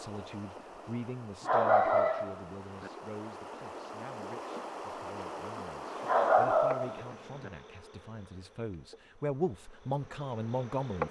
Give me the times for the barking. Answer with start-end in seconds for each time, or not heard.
1.4-2.9, 6.0-7.5.